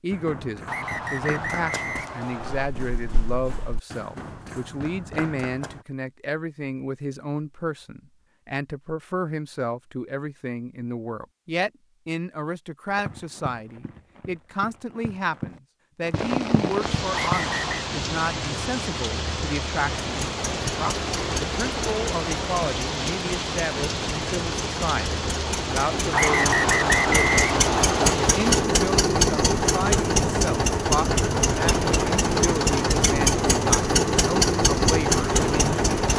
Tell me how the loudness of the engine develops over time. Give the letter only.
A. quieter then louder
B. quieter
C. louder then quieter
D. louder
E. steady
D.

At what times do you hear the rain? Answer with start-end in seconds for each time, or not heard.
16.1-36.1.